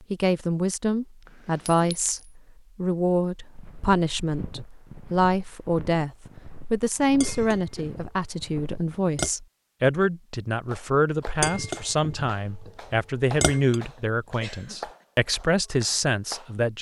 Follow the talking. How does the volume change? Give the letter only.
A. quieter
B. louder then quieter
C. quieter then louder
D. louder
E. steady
E.